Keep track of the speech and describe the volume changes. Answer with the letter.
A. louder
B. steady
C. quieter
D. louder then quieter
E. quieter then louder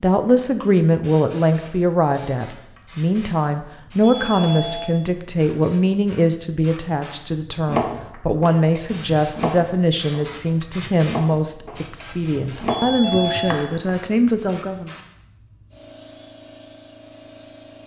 B.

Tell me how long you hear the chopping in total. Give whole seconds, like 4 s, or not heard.
6 s.